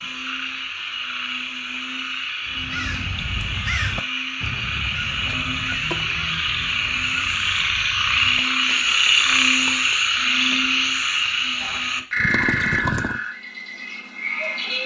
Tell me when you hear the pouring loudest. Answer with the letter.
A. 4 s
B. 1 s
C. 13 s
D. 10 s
C.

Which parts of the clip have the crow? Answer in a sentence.
You can hear the crow from 2.5 to 9.9 s.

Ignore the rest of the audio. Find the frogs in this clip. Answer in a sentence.
The frogs can be heard from 0.0 to 14.8 s.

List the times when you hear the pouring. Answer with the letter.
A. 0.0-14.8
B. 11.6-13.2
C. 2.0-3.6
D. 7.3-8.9
B.